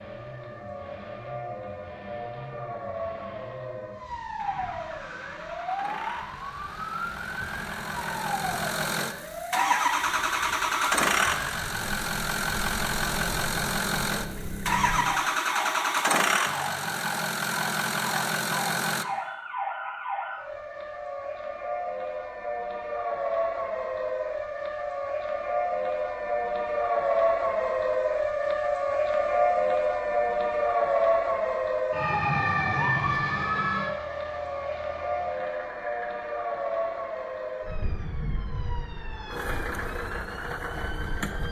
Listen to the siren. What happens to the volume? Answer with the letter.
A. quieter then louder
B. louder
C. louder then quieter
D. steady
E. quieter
C.